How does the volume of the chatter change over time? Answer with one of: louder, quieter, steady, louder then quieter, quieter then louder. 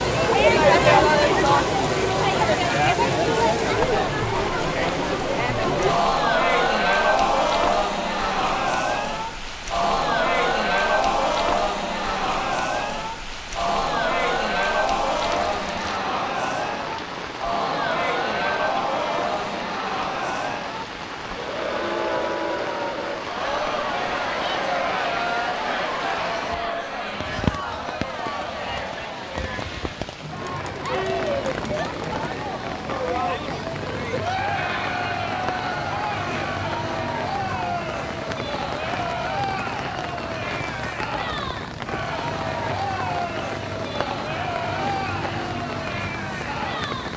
quieter.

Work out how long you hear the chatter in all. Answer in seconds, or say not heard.
47 s.